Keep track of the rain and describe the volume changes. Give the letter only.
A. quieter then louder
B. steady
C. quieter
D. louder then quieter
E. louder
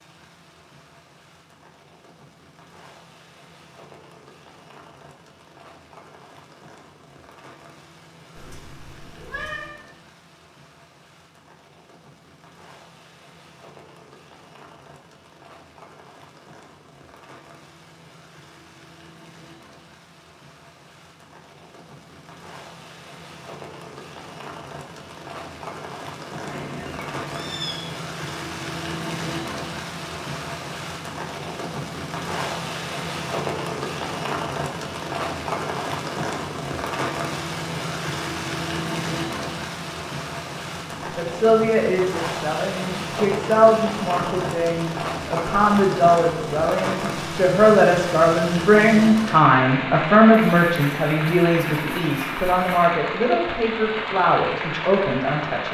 E.